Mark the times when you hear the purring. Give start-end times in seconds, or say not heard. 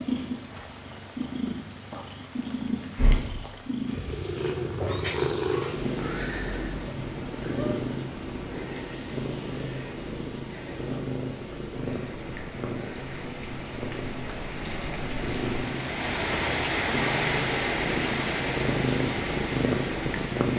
0.0-20.5.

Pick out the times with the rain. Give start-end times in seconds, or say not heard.
0.0-20.5.